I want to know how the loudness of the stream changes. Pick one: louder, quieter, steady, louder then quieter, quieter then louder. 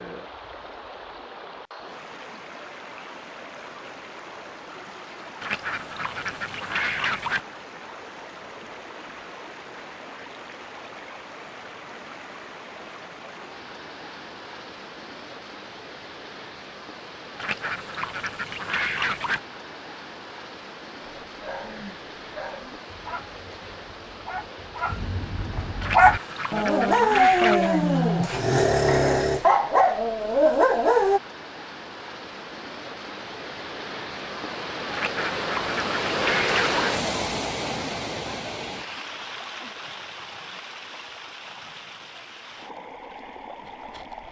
louder.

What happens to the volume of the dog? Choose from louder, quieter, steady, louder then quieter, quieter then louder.
louder.